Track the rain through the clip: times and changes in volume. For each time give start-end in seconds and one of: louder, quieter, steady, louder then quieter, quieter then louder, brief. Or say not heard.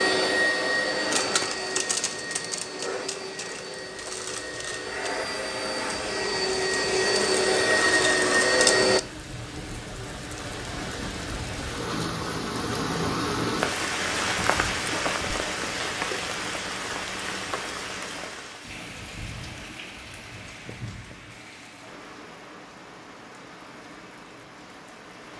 0.0-25.3 louder then quieter.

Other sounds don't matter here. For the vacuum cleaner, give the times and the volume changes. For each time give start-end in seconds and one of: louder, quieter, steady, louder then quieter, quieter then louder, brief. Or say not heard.
0.0-9.0 quieter then louder.